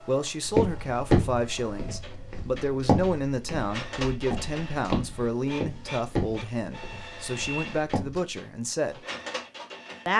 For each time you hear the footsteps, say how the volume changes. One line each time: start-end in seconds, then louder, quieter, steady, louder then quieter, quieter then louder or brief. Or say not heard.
0.5-8.2 quieter.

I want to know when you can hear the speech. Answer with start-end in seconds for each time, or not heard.
0.0-9.0.